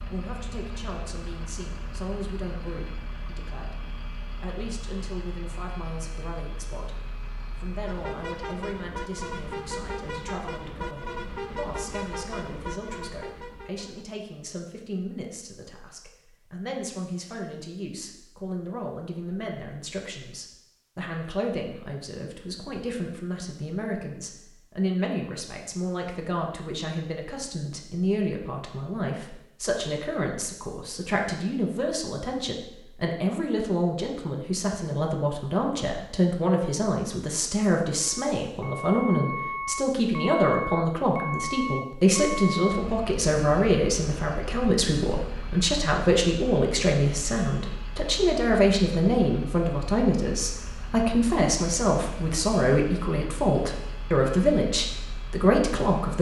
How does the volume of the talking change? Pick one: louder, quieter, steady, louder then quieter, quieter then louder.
louder.